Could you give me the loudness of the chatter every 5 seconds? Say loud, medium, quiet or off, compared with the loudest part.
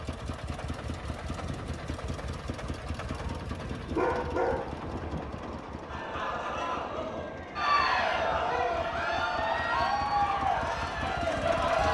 off, loud, loud.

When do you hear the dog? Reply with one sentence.
You can hear the dog from 3.1 to 4.8 s.